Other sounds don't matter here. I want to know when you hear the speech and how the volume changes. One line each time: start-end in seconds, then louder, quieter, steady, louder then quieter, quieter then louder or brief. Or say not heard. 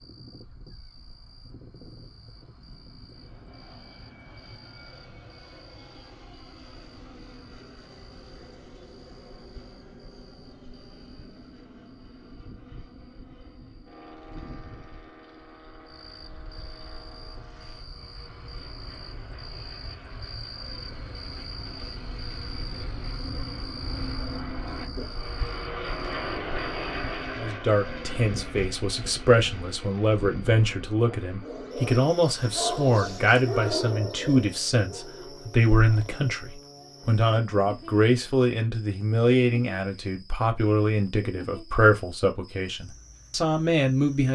27.4-44.2 steady.